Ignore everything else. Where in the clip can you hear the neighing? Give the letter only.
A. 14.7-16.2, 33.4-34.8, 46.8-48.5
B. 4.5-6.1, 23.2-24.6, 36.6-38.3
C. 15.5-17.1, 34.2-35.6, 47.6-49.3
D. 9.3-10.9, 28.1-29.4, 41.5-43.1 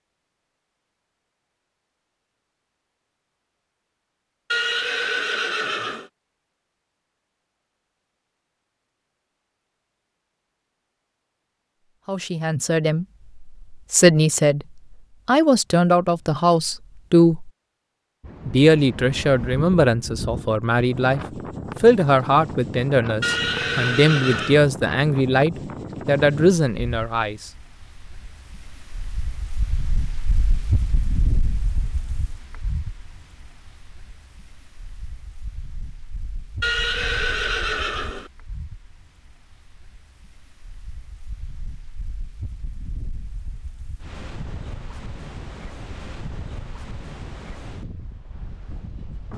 B.